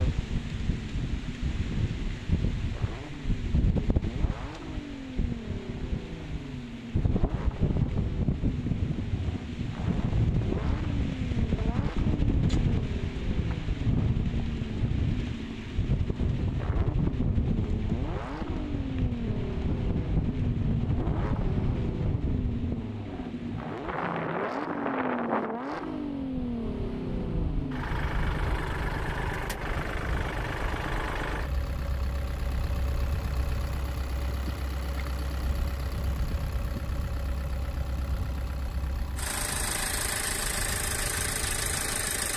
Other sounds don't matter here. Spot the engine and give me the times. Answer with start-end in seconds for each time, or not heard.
0.0-42.3.